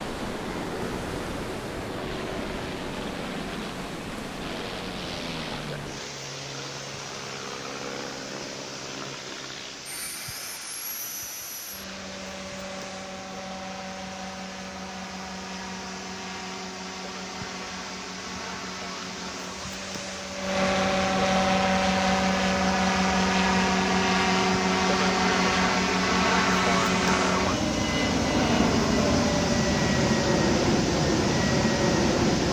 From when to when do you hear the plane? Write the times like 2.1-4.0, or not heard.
0.1-32.4.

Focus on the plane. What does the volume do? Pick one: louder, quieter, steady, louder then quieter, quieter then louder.
louder.